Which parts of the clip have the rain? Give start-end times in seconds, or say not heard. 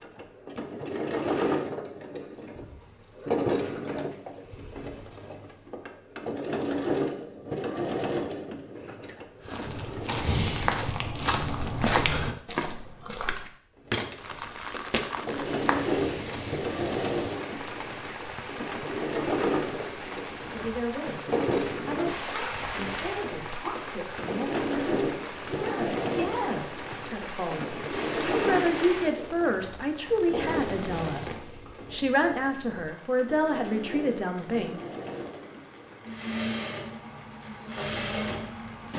14.2-38.9.